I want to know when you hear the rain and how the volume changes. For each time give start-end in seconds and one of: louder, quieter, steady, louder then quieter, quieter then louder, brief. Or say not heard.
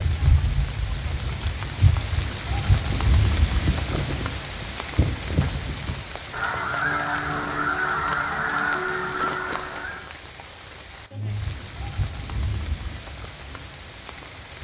0.0-14.5 quieter.